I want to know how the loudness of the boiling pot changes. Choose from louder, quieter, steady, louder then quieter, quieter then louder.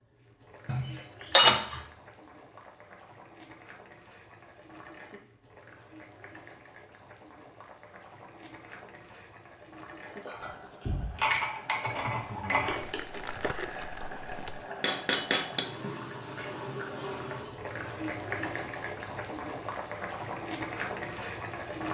louder.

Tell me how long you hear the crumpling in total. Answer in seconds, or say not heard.
2 s.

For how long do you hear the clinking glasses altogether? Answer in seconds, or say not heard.
4 s.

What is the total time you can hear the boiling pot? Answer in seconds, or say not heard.
22 s.